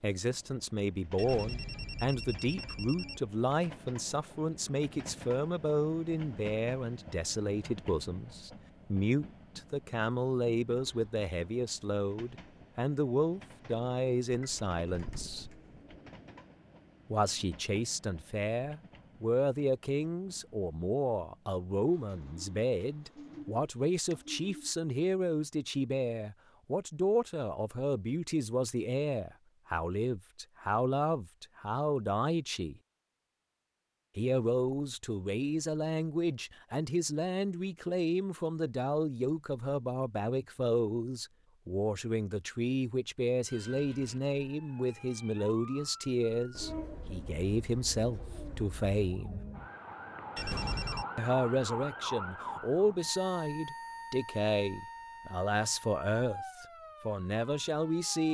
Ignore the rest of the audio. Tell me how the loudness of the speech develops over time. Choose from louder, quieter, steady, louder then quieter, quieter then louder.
steady.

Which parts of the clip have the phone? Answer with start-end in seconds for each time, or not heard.
1.1-3.2, 50.4-51.0.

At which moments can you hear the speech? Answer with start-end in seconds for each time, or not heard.
0.0-15.4, 17.1-32.8, 34.1-49.4, 51.1-58.2.